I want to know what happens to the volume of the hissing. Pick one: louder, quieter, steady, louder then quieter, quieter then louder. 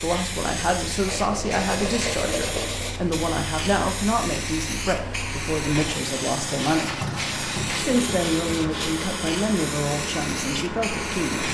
steady.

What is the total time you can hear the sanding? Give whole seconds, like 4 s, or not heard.
4 s.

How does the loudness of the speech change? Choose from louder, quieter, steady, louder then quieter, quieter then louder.
steady.